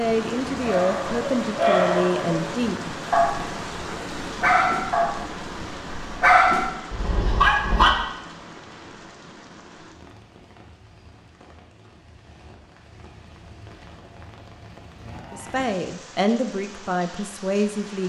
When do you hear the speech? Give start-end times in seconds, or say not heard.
0.0-3.0, 15.3-18.0.